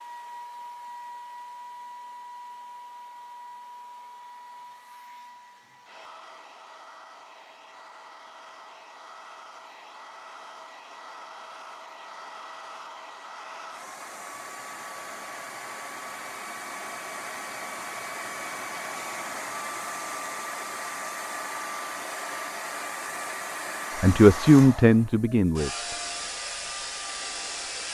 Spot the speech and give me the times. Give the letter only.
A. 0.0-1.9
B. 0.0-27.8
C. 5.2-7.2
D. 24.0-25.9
D.